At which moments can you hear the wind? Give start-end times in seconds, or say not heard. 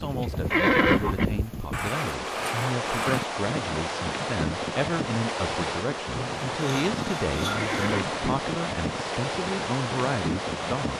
0.0-10.9.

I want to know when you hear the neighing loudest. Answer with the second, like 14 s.
1 s.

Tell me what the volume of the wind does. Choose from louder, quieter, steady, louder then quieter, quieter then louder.
steady.